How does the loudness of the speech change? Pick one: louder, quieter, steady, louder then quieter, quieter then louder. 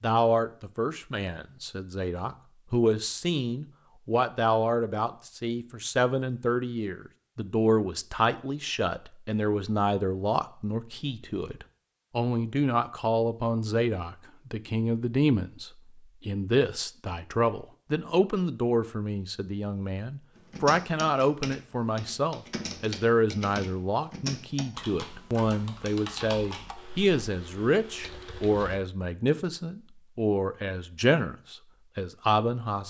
steady.